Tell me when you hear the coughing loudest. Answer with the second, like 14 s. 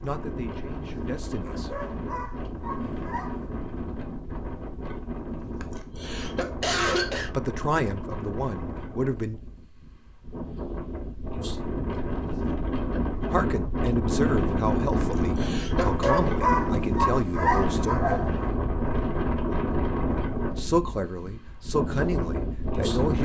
7 s.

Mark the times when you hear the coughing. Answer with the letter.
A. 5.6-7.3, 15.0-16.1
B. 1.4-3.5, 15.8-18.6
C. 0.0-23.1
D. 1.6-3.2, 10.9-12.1
A.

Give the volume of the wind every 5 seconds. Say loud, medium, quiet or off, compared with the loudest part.
medium, medium, loud, loud, loud.